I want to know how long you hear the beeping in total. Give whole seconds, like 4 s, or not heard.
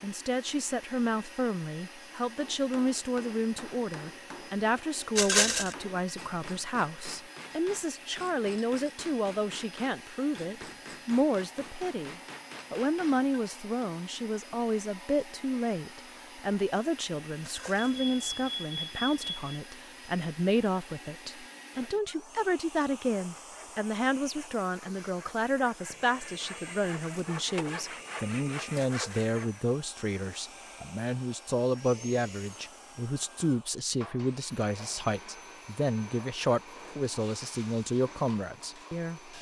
2 s.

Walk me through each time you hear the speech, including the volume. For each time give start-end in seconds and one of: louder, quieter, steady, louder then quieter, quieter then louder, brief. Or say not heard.
0.0-39.3 steady.